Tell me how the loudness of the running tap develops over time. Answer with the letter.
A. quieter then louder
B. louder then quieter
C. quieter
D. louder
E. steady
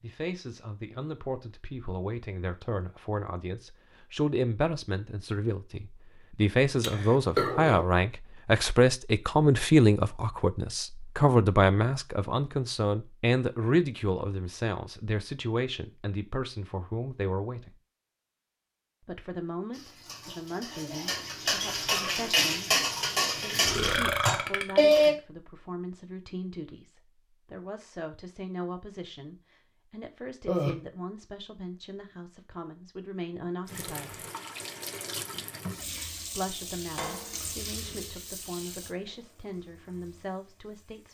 C.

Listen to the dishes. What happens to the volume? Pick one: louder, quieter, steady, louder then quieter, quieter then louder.
louder.